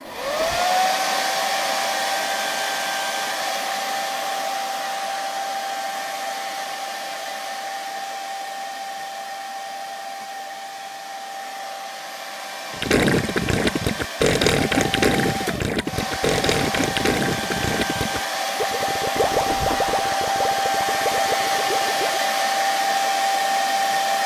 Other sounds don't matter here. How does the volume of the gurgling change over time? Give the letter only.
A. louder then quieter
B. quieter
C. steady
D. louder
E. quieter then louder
B.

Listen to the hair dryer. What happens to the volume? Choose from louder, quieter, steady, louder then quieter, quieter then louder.
quieter then louder.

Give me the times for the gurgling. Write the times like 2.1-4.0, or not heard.
12.7-22.2.